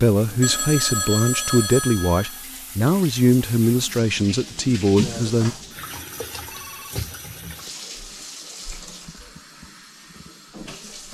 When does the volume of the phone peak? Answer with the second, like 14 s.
1 s.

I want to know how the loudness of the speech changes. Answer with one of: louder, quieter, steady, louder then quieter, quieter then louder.
steady.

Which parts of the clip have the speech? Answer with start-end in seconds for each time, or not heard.
0.0-5.5.